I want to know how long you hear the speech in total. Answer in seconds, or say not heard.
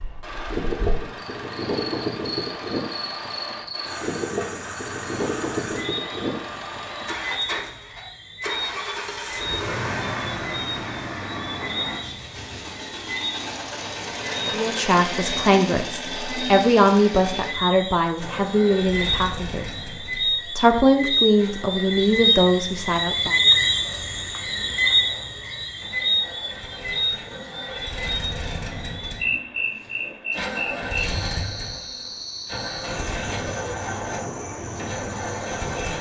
8 s.